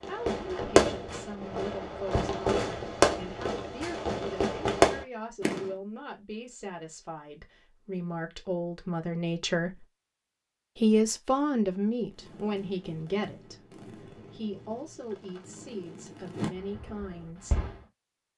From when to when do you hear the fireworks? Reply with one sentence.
The fireworks can be heard from 0.0 to 5.8 s and from 12.1 to 17.8 s.